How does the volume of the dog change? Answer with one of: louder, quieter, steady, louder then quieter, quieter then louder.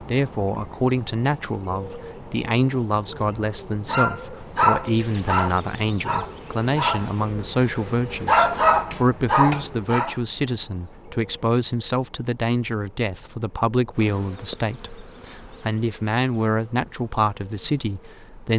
quieter then louder.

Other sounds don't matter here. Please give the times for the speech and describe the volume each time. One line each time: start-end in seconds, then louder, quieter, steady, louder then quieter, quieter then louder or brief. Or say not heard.
0.0-18.5 steady.